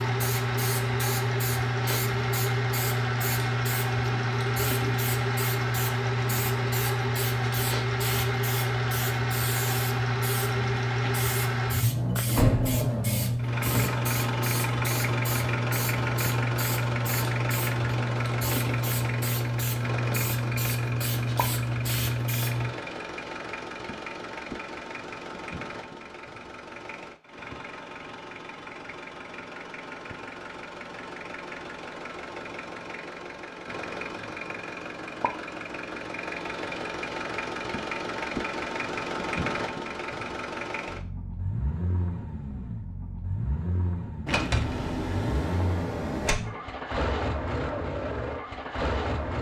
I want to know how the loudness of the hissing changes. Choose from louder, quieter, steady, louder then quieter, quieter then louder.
steady.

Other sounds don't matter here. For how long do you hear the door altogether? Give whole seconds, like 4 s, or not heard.
4 s.